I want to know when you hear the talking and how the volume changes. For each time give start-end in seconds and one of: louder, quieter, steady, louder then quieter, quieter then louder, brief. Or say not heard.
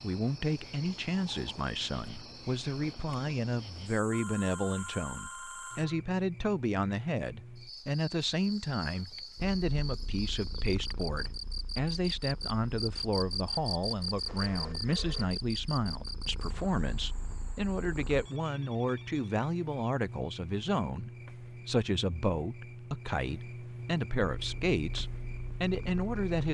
0.0-26.4 steady.